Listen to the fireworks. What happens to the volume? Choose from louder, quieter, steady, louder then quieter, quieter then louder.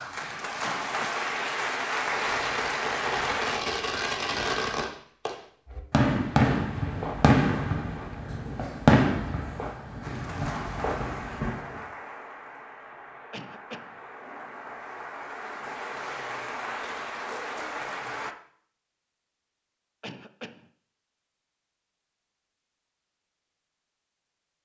louder then quieter.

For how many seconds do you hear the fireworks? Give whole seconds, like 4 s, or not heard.
10 s.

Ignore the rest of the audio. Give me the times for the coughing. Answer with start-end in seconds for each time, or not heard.
0.6-1.2, 13.3-14.0, 20.0-20.7.